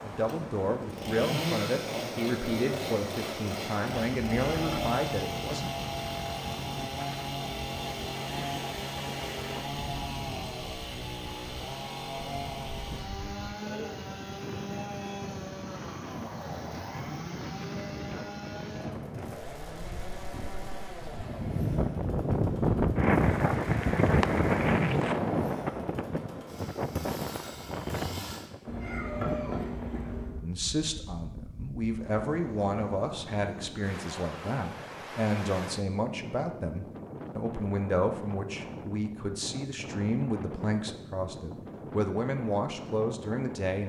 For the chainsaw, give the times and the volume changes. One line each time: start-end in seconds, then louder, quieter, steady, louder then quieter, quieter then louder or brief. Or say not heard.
0.0-28.6 quieter.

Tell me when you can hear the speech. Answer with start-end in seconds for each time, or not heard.
0.0-5.7, 30.4-43.8.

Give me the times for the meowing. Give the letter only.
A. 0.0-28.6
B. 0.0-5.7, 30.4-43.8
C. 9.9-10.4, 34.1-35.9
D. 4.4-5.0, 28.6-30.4
D.